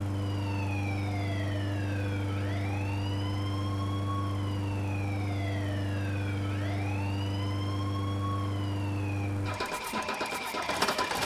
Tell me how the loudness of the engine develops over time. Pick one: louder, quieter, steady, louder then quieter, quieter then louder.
steady.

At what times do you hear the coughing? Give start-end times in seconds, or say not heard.
not heard.